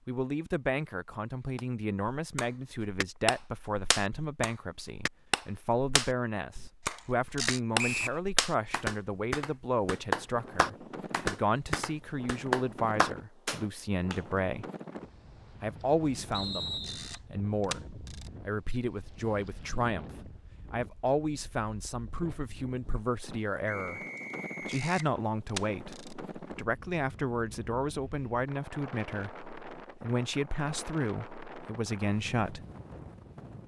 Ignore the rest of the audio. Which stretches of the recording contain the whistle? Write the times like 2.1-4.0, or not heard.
7.8-8.2, 16.3-17.2, 23.6-24.9.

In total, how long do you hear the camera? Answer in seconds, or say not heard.
4 s.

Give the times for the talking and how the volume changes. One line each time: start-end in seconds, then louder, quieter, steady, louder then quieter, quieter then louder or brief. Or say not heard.
0.1-14.7 steady
15.6-24.0 steady
24.6-32.6 steady.